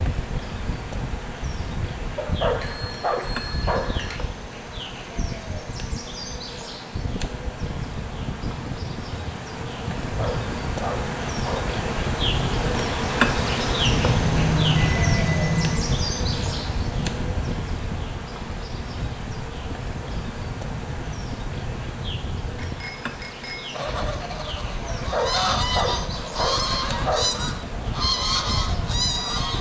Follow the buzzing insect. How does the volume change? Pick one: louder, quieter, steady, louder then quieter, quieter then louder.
louder then quieter.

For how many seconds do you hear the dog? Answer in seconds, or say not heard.
6 s.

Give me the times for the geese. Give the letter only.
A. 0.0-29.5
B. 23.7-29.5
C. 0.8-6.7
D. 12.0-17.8
B.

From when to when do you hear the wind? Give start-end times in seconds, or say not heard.
0.0-29.5.